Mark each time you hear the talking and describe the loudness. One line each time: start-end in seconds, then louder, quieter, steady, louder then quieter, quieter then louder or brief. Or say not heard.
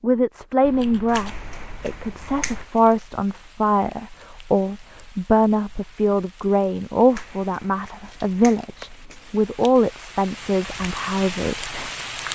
0.0-11.9 steady.